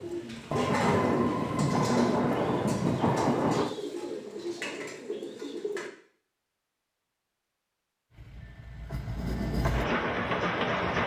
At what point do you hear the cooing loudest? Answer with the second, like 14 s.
1 s.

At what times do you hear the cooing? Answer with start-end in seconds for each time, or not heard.
0.0-5.9.